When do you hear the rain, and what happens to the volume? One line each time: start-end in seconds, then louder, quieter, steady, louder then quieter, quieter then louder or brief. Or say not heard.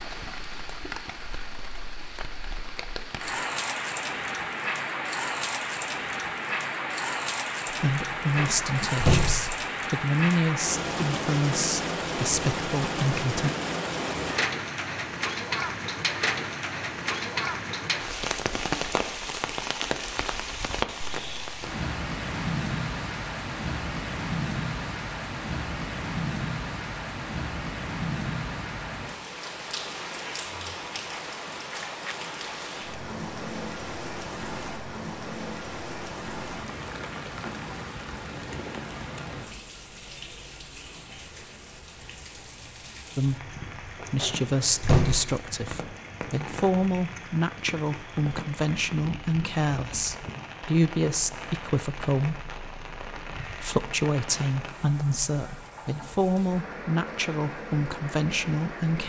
0.0-59.0 quieter.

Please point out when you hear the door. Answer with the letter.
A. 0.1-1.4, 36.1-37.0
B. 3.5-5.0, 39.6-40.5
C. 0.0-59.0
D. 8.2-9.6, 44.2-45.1
D.